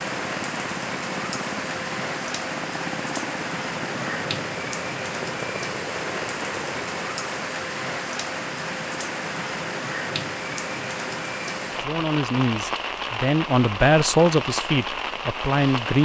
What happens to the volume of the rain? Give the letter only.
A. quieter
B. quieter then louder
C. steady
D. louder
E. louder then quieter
C.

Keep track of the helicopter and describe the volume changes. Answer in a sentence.
The loudness of the helicopter stays about the same.